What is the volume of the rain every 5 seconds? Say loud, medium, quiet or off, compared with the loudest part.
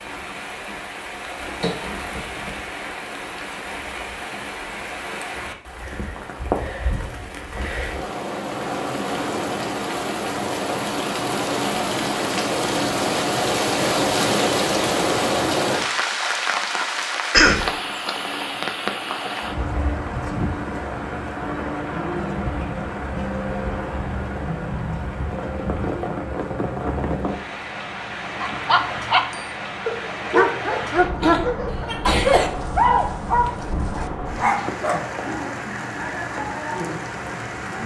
medium, medium, loud, loud, medium, medium, medium, medium.